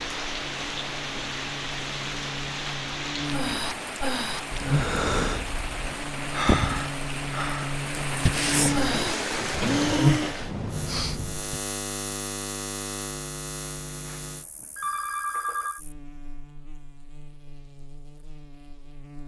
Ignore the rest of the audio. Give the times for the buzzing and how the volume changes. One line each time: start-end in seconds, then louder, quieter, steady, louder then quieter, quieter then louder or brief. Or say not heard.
0.0-19.2 louder then quieter.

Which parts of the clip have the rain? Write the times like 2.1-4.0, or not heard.
0.0-11.4.